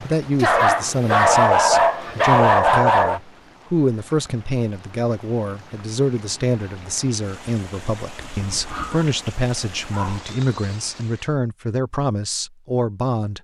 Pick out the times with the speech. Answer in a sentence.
You can hear the speech from 0.0 to 13.4 s.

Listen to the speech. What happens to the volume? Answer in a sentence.
The loudness of the speech stays about the same.